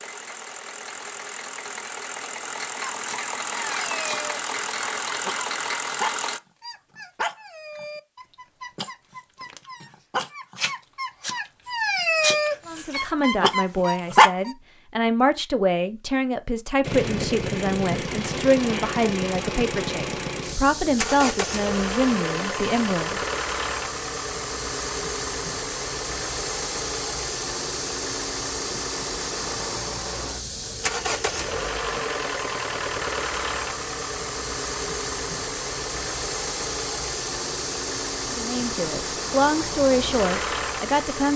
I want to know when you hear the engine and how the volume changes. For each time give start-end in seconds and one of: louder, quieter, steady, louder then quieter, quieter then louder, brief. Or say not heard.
0.0-6.4 louder
16.8-41.3 steady.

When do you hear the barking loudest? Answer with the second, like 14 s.
14 s.